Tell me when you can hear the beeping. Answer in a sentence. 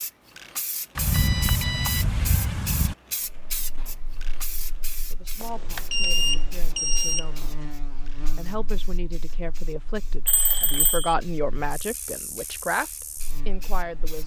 The beeping can be heard from 0.9 to 3.0 s, from 5.4 to 7.5 s and from 10.2 to 11.2 s.